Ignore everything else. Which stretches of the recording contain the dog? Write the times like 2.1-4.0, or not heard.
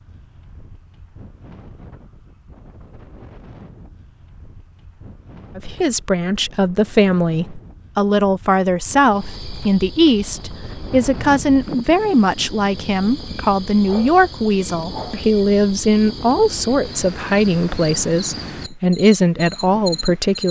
not heard.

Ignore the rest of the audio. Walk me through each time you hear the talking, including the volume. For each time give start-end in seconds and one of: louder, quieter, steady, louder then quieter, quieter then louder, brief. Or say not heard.
5.5-20.4 steady.